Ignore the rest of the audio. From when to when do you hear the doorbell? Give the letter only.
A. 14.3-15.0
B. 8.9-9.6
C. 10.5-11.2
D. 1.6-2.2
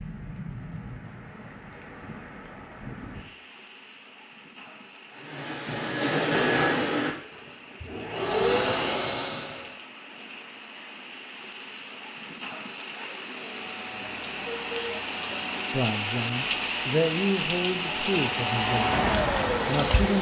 A.